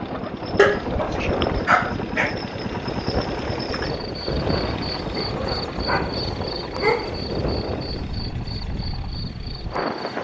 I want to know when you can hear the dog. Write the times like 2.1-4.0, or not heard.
0.6-2.4, 5.2-7.3.